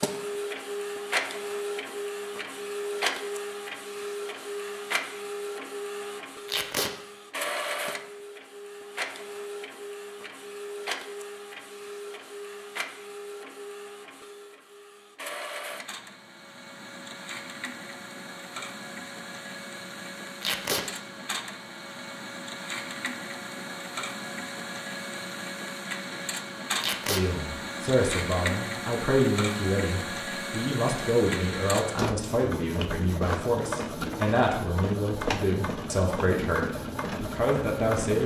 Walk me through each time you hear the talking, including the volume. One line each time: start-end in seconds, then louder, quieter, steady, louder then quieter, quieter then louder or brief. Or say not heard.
27.1-38.2 steady.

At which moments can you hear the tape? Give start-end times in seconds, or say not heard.
6.5-6.9, 20.4-20.9, 26.8-27.2.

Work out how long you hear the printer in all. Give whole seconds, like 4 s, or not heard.
38 s.